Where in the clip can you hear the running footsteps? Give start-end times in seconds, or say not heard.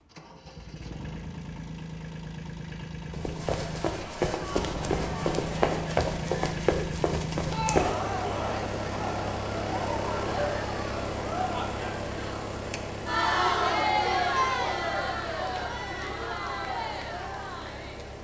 3.1-8.0.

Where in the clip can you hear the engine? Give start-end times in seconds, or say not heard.
0.0-18.1.